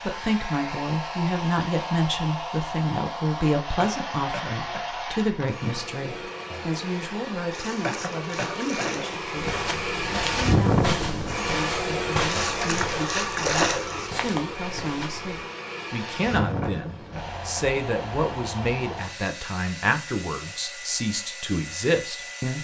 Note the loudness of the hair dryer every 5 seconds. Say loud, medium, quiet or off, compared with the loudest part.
medium, medium, loud, medium, medium.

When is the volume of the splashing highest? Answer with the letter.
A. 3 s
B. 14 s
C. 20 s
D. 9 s
B.